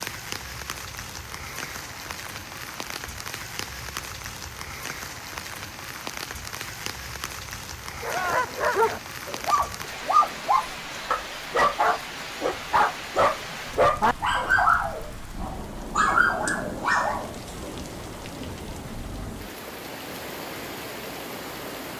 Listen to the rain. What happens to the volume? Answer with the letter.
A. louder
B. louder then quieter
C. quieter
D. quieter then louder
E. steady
E.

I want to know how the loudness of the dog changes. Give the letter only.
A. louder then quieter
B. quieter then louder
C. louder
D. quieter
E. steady
E.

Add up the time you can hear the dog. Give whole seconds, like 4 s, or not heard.
10 s.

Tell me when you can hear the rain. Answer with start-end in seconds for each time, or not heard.
0.0-21.9.